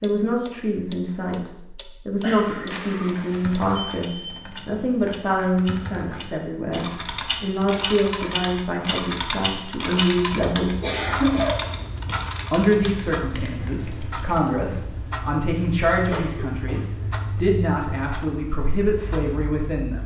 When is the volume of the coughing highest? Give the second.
11 s.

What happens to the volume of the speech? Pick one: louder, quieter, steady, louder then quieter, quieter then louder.
steady.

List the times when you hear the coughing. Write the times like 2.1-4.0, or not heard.
2.2-3.0, 10.8-11.7, 16.1-17.1.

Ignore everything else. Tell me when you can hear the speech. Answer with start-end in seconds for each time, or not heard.
0.0-10.8, 12.5-20.0.